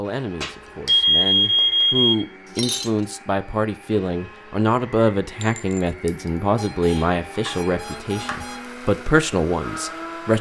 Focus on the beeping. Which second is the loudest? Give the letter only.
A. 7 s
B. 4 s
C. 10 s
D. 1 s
D.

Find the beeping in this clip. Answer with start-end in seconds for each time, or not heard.
0.4-2.1, 6.5-8.6.